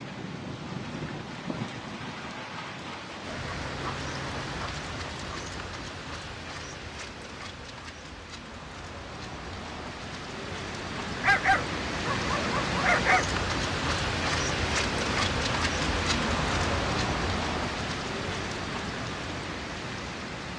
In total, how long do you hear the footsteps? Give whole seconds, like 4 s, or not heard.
not heard.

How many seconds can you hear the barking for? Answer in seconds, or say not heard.
2 s.